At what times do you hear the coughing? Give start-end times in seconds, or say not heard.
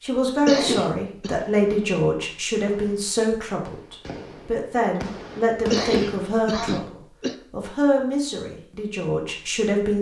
0.5-1.4, 5.7-7.3.